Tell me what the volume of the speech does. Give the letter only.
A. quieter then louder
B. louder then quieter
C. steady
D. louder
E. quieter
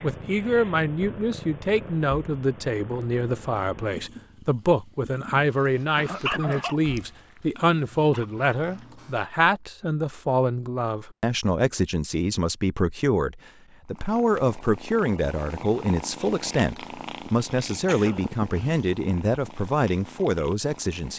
C.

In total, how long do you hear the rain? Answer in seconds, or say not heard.
not heard.